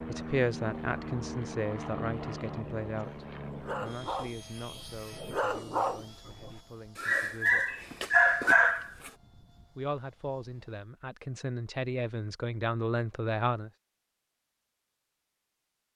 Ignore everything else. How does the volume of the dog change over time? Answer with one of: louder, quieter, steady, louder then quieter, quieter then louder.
louder.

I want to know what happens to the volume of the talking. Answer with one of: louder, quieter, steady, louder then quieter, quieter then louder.
quieter then louder.